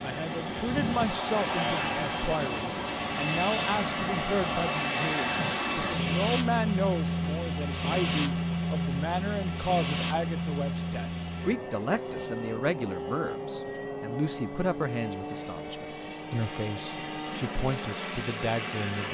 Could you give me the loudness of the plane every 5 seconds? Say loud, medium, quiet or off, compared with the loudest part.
loud, loud, medium, medium.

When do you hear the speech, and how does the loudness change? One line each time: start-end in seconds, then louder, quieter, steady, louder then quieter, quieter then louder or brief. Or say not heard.
0.0-19.0 steady.